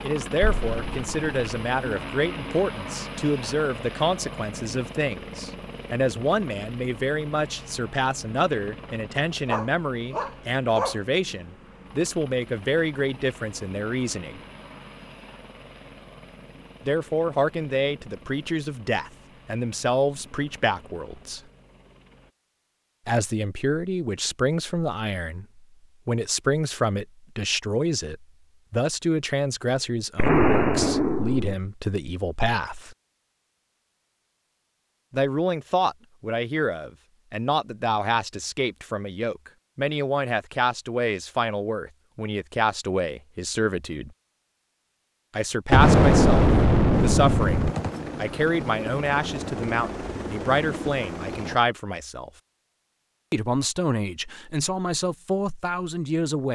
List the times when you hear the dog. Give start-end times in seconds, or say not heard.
9.4-11.0.